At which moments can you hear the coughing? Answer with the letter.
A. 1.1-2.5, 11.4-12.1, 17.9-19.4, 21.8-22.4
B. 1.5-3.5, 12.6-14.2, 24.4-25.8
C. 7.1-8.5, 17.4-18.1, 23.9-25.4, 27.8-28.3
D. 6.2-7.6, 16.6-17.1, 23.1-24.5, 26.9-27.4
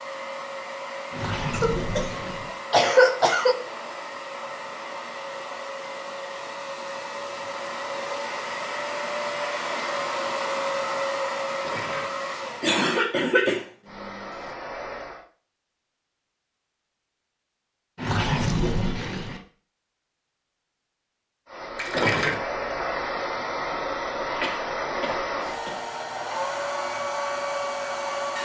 B.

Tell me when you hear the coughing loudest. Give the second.
3 s.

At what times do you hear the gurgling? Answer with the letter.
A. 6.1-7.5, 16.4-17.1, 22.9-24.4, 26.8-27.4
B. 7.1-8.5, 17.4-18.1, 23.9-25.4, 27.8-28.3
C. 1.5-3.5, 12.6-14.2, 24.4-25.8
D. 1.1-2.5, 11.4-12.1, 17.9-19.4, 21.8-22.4
D.